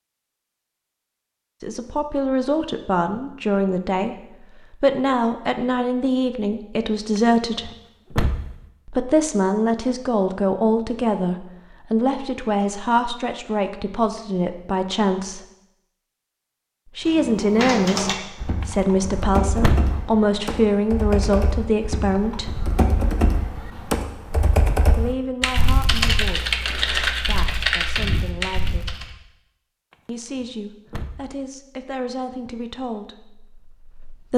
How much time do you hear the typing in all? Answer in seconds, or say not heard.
12 s.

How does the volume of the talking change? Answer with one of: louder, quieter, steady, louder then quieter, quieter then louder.
quieter.